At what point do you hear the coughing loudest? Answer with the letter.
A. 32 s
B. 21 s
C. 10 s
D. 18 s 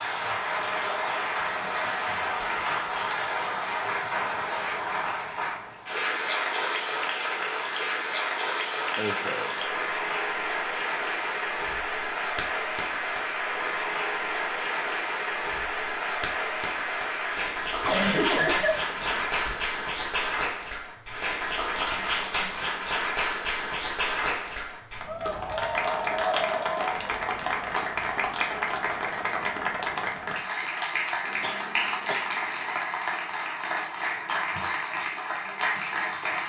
D.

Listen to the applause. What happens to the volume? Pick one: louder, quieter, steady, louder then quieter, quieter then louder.
steady.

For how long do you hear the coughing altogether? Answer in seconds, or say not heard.
4 s.